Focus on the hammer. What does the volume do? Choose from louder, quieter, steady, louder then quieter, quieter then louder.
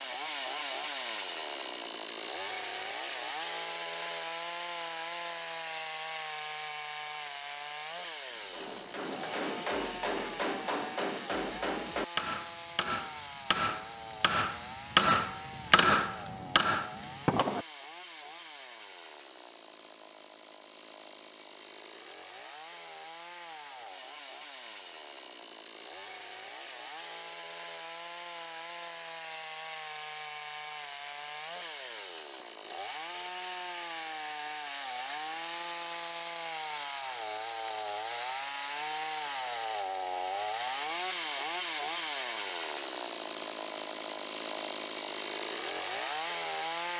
louder.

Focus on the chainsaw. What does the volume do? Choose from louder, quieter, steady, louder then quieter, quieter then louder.
quieter then louder.